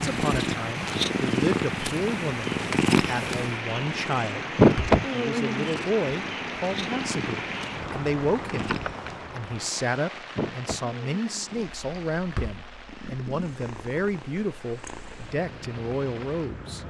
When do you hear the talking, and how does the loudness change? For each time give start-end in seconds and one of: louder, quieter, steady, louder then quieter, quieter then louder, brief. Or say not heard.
0.0-16.8 steady.